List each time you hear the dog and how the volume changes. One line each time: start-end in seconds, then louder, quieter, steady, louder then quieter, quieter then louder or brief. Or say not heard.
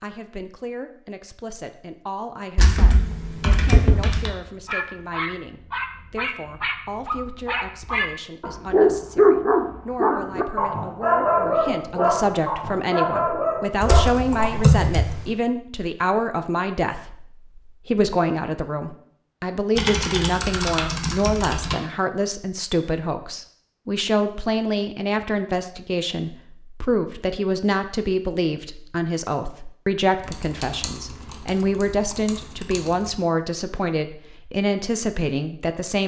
4.6-14.8 louder then quieter.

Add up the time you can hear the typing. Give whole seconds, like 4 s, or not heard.
8 s.